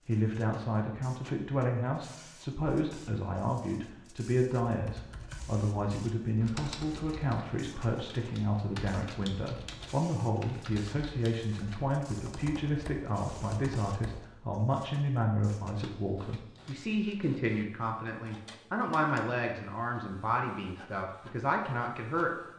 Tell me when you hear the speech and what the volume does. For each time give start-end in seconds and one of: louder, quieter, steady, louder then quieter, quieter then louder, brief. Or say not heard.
0.1-22.4 steady.